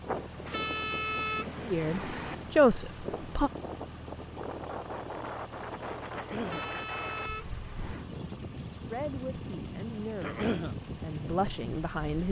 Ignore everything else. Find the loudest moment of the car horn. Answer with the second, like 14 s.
1 s.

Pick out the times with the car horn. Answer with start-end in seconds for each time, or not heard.
0.5-2.4, 6.4-8.1.